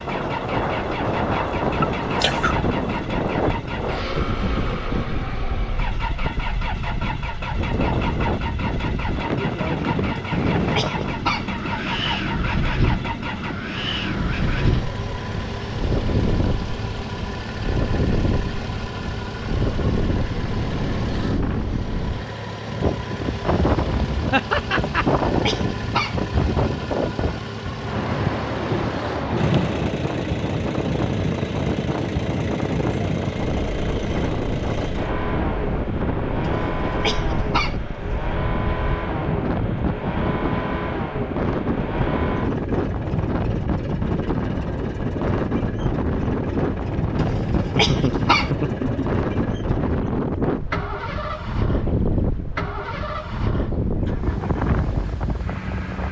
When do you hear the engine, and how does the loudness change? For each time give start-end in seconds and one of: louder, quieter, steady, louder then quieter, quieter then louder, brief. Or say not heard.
0.0-56.0 steady.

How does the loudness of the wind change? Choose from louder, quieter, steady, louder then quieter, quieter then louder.
steady.